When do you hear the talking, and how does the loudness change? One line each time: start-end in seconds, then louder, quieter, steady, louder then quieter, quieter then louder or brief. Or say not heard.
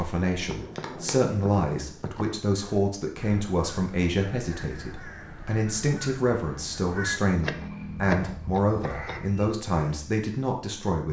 0.0-11.0 steady.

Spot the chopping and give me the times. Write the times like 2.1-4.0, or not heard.
0.4-2.4, 7.4-9.2.